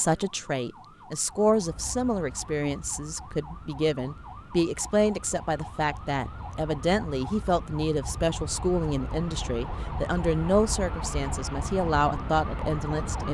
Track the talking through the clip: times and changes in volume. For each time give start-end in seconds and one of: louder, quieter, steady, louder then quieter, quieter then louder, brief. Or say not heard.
0.0-13.2 steady.